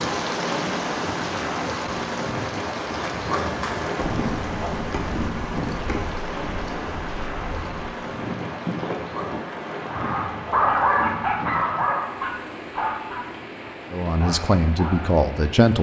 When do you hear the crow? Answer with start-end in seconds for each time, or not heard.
not heard.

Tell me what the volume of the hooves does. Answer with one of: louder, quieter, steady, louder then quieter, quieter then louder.
quieter then louder.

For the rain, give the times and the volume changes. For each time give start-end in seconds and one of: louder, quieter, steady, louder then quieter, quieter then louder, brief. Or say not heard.
0.0-15.7 quieter.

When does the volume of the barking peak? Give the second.
11 s.